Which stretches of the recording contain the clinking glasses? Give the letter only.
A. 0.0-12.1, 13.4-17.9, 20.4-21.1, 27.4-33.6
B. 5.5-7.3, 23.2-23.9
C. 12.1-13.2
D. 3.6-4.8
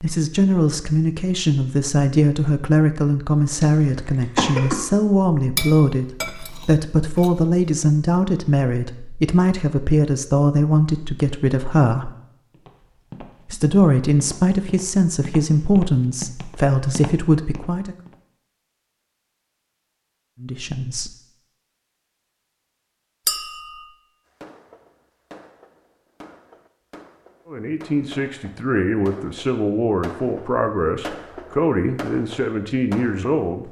B.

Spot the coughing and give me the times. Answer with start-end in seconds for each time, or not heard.
3.6-4.8.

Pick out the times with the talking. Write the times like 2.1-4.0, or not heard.
0.0-12.1, 13.4-17.9, 20.4-21.1, 27.4-33.6.